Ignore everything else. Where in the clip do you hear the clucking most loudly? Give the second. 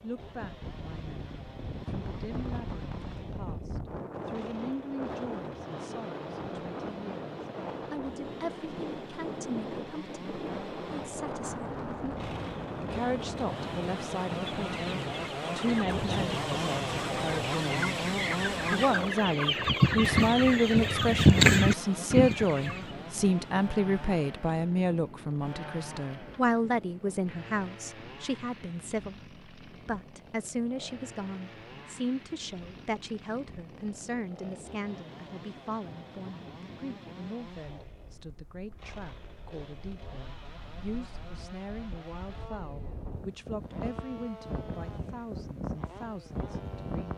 21 s.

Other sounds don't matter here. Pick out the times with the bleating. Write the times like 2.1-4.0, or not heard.
not heard.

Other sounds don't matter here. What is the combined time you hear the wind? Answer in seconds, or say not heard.
47 s.